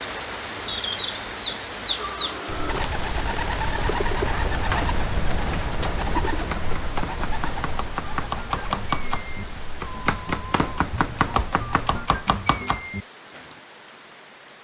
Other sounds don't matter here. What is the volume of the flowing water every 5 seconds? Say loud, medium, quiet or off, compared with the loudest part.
loud, medium, medium.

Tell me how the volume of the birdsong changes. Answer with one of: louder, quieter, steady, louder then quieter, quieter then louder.
quieter.